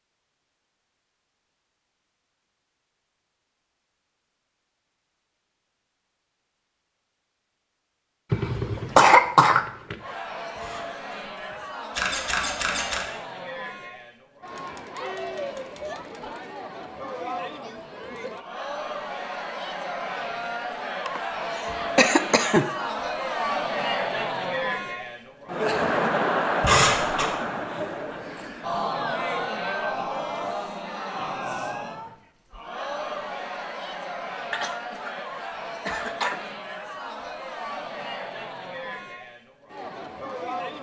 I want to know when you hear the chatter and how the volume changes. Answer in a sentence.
You can hear the chatter from 10.0 to 40.7 s, getting louder then quieter.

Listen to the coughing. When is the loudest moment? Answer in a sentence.
The volume of the coughing peaks at 9 seconds.